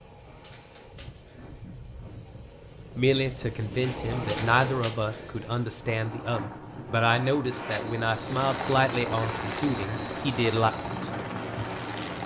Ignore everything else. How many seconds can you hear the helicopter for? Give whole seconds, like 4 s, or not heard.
4 s.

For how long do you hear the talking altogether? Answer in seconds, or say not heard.
8 s.